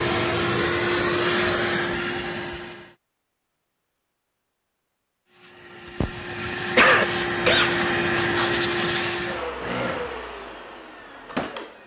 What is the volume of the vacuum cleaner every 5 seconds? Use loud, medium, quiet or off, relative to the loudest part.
loud, loud, medium.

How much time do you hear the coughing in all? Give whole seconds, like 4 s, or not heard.
2 s.